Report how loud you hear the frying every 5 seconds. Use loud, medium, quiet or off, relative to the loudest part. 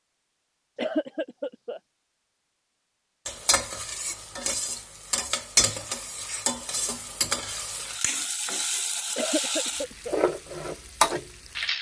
medium, loud, loud.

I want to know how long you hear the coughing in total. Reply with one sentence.
The coughing can be heard for 2 seconds in total.